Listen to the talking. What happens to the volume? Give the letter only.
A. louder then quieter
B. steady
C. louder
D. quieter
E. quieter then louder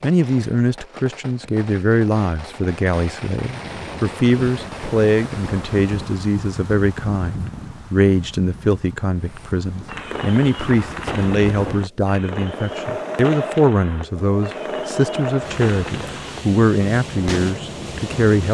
B.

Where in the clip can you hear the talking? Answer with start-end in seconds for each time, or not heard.
0.0-18.4.